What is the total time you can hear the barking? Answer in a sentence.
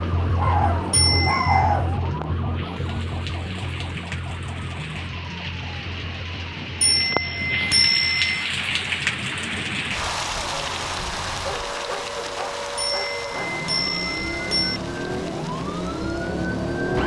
The barking can be heard for 4 seconds in total.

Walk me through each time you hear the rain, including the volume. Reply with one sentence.
The rain can be heard from 0.0 to 17.0 s, getting louder then quieter.